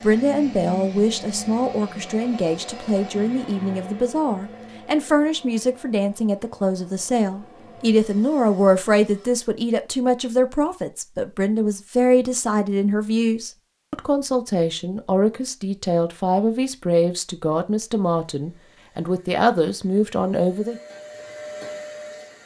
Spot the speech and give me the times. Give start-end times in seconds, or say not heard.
0.0-20.8.